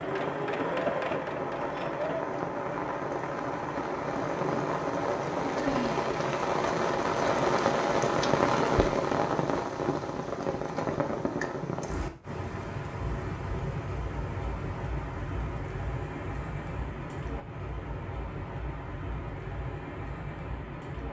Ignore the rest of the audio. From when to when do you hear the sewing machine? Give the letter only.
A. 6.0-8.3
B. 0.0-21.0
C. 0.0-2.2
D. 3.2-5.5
C.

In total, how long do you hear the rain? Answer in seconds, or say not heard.
21 s.